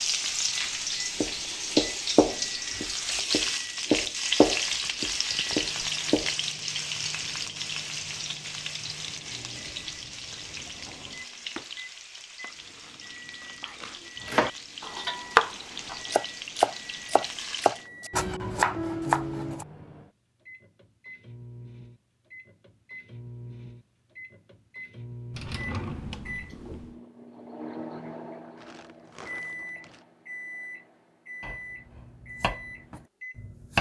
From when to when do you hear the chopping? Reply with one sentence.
You can hear the chopping from 1.2 to 6.3 s, from 14.2 to 19.6 s and from 31.4 to 33.7 s.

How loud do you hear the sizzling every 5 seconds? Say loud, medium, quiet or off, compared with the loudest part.
loud, loud, quiet, medium, off, off, off.